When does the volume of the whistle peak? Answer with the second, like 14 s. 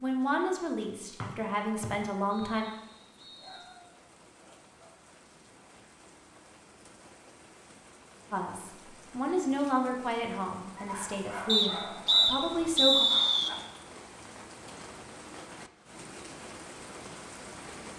13 s.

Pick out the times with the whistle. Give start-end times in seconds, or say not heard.
1.2-3.6, 11.4-13.5.